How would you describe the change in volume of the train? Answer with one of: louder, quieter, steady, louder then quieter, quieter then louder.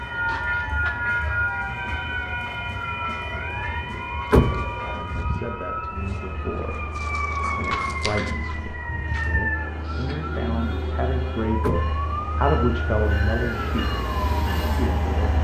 quieter then louder.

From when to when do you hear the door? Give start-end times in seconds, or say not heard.
4.3-5.0, 11.6-12.2.